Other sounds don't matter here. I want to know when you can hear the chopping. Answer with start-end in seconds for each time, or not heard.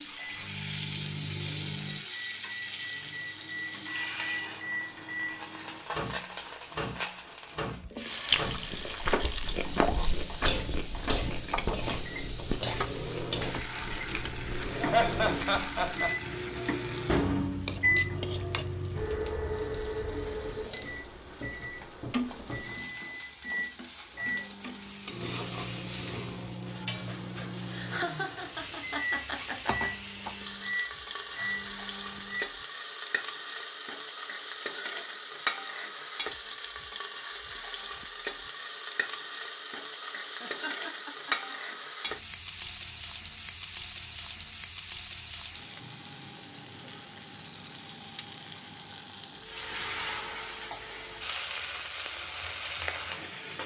not heard.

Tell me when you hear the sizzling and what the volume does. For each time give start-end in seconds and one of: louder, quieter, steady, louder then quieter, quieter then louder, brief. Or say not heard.
0.0-53.6 steady.